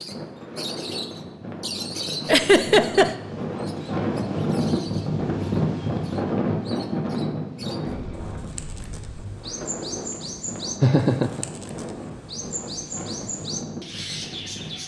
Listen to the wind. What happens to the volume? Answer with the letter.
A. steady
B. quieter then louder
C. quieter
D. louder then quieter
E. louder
D.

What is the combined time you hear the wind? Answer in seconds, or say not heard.
15 s.